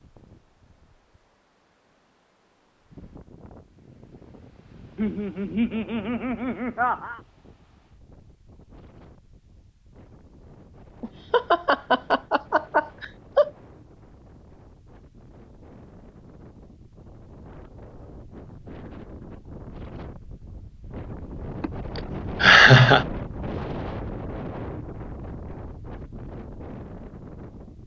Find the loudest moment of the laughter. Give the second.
23 s.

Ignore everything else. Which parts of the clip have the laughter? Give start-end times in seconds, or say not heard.
5.0-7.2, 11.0-13.5, 21.6-23.1.